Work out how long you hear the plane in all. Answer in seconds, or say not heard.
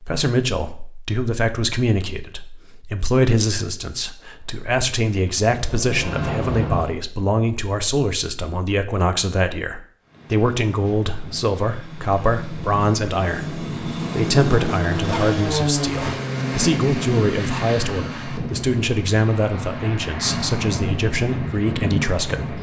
15 s.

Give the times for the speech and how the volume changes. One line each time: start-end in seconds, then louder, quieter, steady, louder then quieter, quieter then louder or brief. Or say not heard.
0.0-22.5 steady.